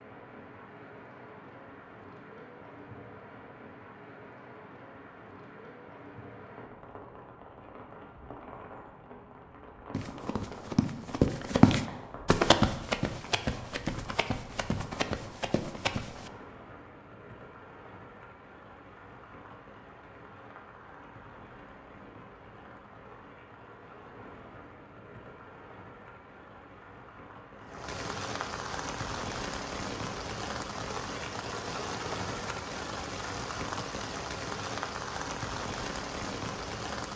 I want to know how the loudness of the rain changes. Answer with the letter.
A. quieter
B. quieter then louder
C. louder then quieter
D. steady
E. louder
E.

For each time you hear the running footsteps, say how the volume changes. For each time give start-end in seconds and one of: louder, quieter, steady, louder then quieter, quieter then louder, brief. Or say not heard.
9.9-16.3 louder then quieter.